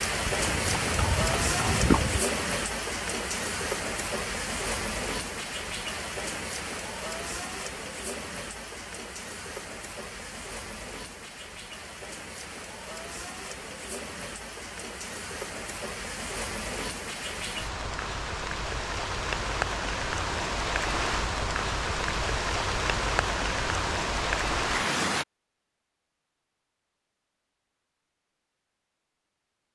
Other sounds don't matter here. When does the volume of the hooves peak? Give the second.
2 s.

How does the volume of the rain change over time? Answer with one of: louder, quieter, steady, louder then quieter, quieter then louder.
quieter then louder.